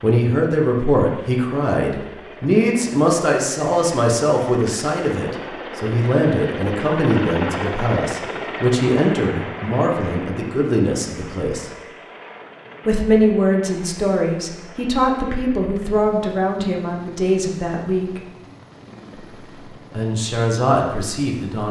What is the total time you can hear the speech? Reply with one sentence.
You can hear the speech for 19 seconds altogether.